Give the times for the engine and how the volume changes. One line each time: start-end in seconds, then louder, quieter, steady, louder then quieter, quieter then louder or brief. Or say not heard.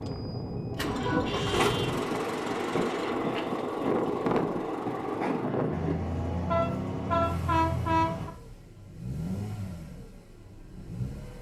0.0-11.3 quieter.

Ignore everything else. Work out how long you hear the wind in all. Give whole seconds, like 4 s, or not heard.
6 s.